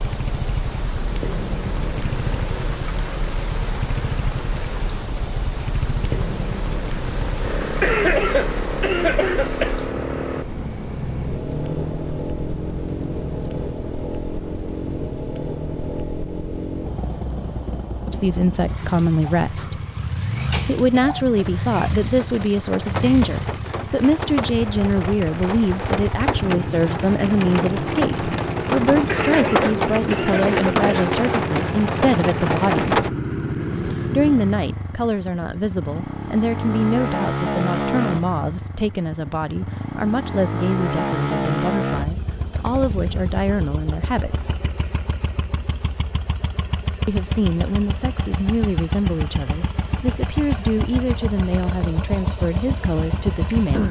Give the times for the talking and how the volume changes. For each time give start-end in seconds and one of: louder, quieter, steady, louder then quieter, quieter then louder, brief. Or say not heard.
18.1-19.8 brief
20.6-33.0 steady
34.1-44.6 steady
47.0-53.8 steady.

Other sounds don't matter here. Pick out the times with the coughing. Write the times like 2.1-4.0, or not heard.
7.8-9.8, 29.1-31.1.